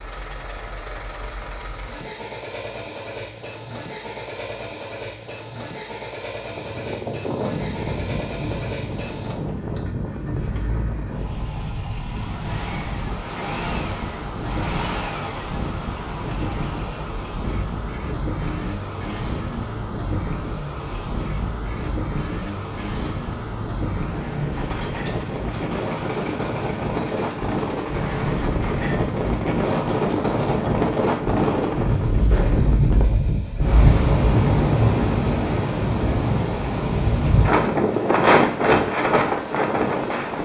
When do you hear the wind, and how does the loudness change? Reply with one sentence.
The wind can be heard from 6.5 to 40.4 s, getting louder.